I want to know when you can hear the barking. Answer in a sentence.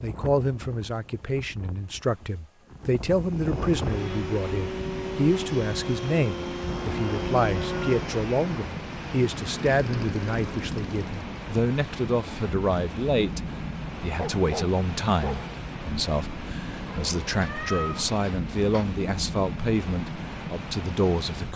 You can hear the barking from 14.2 to 15.6 s.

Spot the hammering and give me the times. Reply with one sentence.
The hammering can't be heard in this clip.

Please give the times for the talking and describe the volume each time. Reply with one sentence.
The talking can be heard from 0.0 to 21.5 s, at a steady volume.